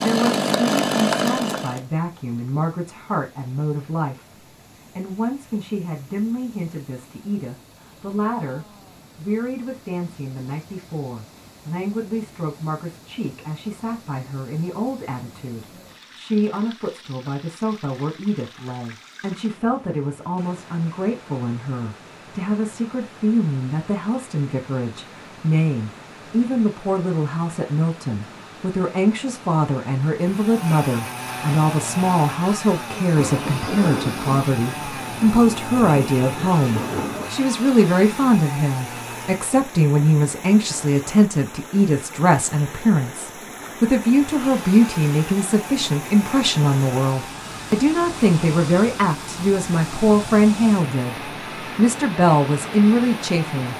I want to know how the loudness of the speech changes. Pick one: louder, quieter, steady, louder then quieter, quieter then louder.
louder.